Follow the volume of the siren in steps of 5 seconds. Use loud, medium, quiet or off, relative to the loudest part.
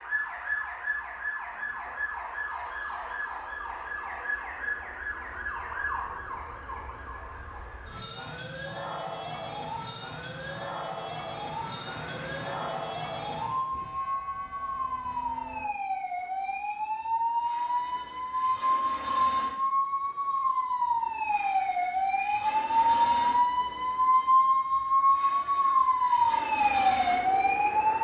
medium, quiet, medium, medium, loud, loud.